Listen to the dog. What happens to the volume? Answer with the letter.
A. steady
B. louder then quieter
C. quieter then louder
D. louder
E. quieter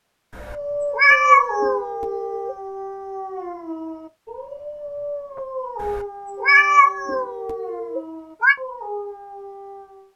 E.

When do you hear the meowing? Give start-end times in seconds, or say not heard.
0.3-2.5, 5.8-8.6.